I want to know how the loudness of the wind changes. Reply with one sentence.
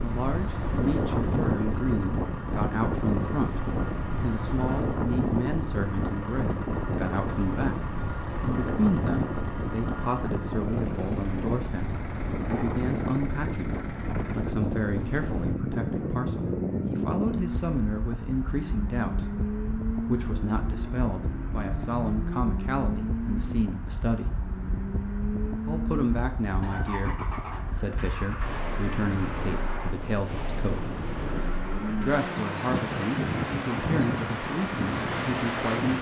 The volume of the wind goes down, then up.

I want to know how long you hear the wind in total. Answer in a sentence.
You can hear the wind for 36 seconds altogether.